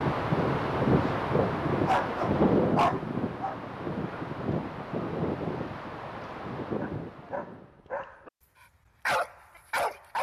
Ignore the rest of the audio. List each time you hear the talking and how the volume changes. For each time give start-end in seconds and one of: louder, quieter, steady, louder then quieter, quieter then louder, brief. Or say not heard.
not heard.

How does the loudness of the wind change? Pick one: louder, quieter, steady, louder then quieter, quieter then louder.
quieter.